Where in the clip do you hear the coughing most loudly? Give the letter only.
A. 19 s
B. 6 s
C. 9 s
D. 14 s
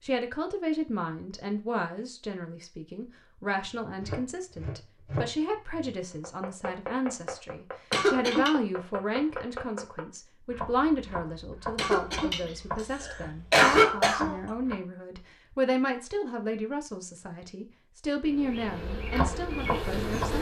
D.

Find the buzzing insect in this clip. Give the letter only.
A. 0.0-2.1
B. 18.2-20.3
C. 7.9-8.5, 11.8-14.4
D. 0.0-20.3
B.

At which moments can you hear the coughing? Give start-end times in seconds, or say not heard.
7.9-8.5, 11.8-14.4.